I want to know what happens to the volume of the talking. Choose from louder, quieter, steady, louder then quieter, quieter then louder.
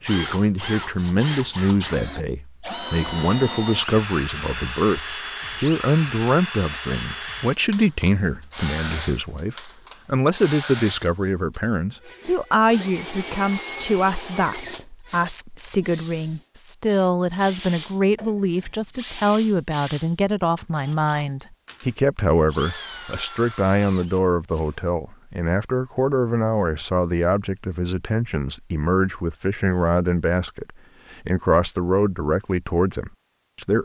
steady.